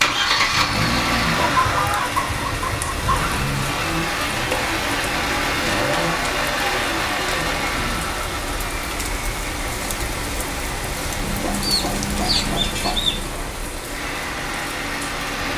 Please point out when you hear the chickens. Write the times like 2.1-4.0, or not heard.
1.4-3.2, 11.2-13.2.